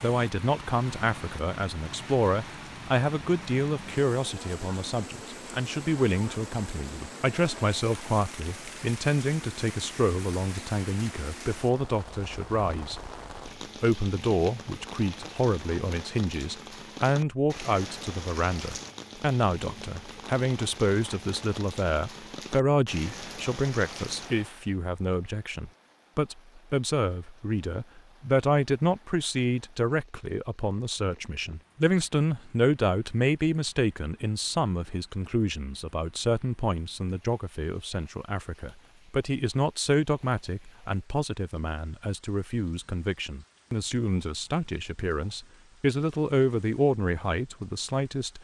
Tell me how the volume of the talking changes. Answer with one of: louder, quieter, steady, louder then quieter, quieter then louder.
steady.